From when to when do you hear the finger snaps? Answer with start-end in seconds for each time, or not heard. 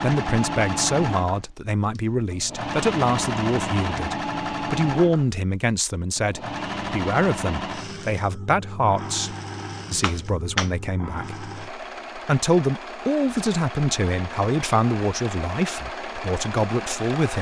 10.0-10.7.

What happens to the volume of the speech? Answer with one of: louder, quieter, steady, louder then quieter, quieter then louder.
steady.